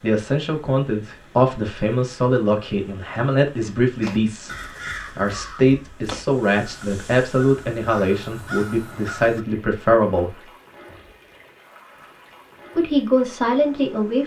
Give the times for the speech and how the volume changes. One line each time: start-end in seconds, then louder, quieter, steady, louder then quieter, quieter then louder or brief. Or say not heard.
0.0-10.4 steady
12.8-14.2 brief.